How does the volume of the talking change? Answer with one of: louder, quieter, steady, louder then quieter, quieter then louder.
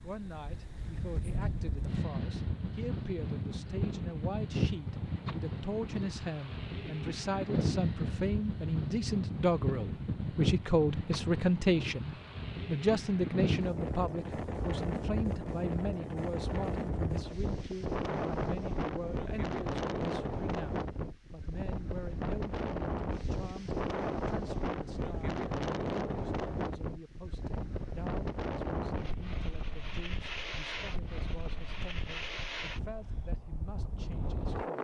louder then quieter.